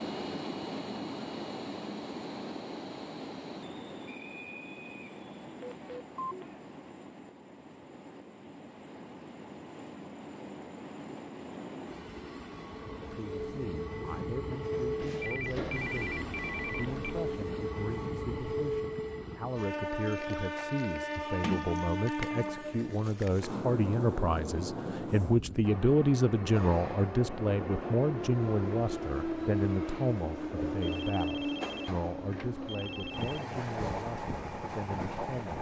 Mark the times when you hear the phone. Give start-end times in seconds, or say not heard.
5.6-6.5, 15.2-17.2, 30.8-33.5.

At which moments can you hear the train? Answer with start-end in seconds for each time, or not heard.
0.0-35.5.